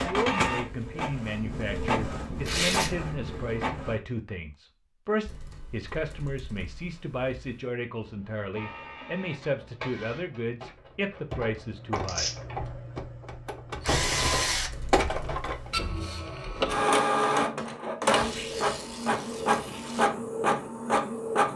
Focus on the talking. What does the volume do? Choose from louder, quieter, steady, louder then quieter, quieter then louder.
steady.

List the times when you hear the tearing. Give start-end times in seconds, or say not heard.
2.5-2.9, 11.9-12.3, 18.1-20.1.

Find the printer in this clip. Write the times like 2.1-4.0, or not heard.
0.0-4.0, 8.0-21.5.